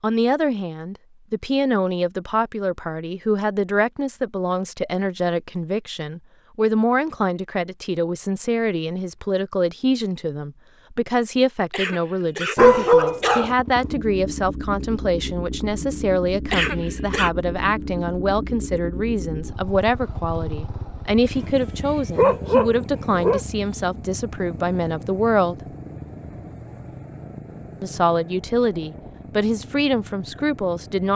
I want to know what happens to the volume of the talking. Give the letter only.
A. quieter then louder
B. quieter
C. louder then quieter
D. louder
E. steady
E.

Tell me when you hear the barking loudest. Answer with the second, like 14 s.
13 s.